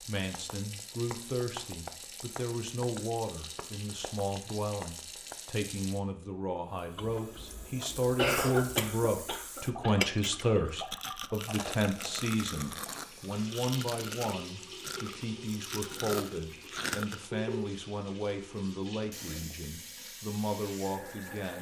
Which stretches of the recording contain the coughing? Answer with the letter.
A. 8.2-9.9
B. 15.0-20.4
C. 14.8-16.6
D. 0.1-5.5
A.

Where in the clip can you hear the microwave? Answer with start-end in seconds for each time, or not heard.
not heard.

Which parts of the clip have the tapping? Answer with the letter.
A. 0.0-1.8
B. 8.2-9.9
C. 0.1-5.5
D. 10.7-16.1
C.